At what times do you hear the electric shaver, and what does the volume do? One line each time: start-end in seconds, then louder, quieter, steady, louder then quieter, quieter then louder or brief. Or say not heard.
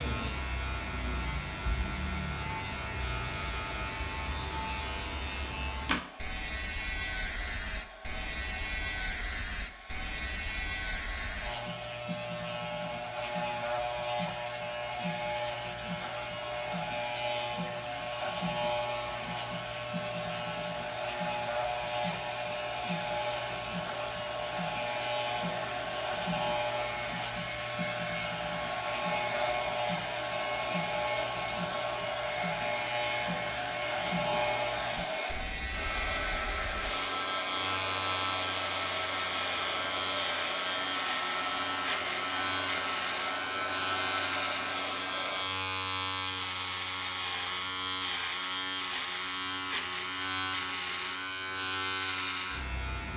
0.0-53.1 steady.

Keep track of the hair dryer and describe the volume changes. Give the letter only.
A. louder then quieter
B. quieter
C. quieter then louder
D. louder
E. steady
D.